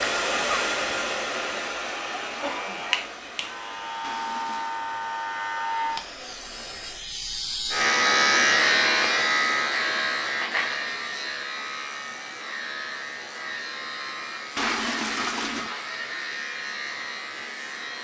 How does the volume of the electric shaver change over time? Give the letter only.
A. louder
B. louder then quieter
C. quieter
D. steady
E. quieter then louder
B.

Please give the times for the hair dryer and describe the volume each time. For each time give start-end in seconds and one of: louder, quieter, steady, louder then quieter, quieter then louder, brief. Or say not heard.
0.0-7.1 quieter.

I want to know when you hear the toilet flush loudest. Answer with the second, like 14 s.
15 s.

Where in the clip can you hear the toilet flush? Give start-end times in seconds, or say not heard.
4.0-4.8, 14.6-15.8.